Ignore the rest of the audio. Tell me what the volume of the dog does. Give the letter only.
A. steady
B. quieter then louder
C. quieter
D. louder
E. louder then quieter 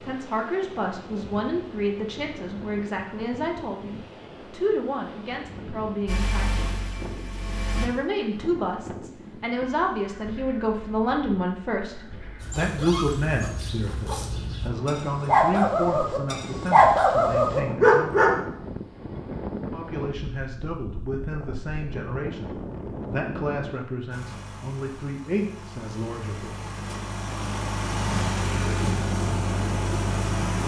D.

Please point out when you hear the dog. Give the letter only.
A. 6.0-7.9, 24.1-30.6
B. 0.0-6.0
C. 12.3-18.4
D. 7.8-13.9
C.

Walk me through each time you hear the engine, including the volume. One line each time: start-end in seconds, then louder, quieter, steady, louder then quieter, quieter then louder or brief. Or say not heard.
6.0-7.9 brief
24.1-30.6 louder.